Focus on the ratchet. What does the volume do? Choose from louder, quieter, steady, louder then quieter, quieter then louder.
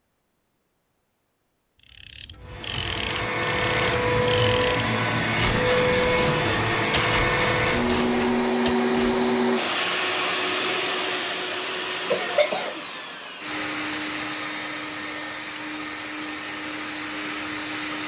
steady.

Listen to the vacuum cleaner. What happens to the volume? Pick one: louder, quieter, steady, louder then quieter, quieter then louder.
quieter.